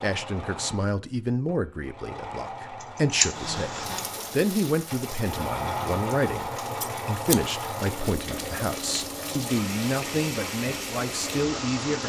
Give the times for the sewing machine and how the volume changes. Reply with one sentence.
The sewing machine can be heard from 0.0 to 11.8 s, getting louder then quieter.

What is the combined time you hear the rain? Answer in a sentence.
You can hear the rain for 9 seconds altogether.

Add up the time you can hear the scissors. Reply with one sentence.
You can hear the scissors for 2 seconds altogether.